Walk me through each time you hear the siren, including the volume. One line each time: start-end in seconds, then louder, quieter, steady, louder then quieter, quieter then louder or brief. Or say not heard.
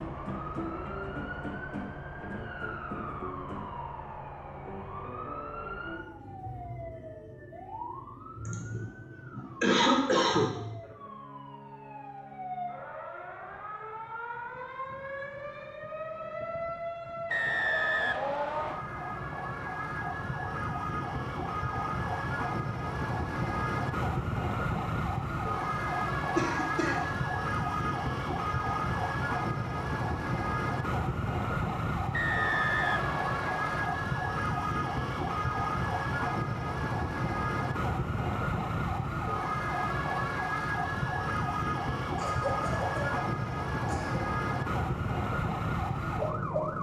0.0-46.7 louder.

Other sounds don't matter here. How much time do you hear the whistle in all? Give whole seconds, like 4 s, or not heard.
3 s.